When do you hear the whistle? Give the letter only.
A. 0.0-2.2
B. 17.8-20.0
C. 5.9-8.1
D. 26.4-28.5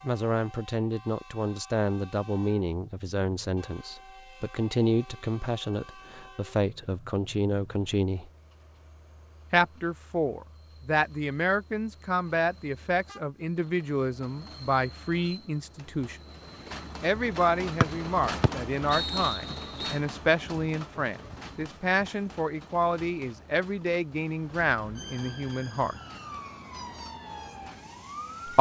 B.